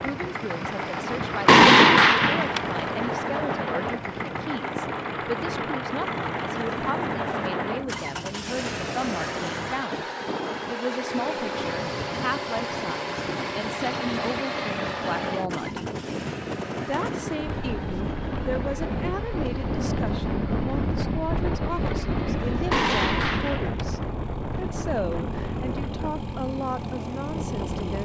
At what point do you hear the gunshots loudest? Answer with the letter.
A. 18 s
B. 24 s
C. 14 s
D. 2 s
D.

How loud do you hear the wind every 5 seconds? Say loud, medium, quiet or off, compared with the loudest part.
medium, medium, medium, loud, loud, medium.